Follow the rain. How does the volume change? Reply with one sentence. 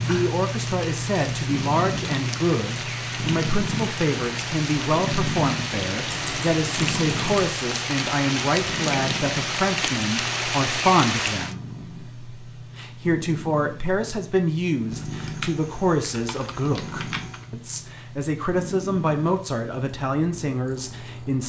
The loudness of the rain goes up.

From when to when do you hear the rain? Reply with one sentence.
You can hear the rain from 0.0 to 11.6 s.